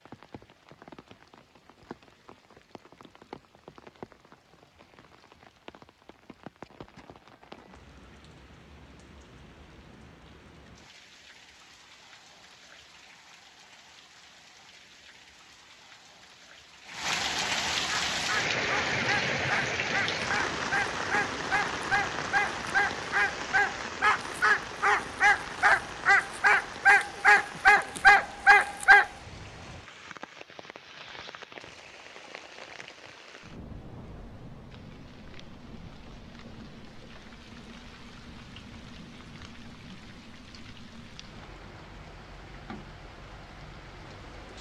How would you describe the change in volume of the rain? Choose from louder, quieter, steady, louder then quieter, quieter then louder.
louder then quieter.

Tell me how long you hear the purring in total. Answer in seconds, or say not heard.
not heard.